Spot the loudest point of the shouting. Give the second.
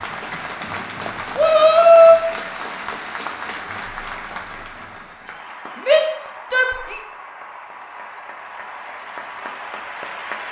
2 s.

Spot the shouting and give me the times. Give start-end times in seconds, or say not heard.
1.4-2.1, 5.8-7.0.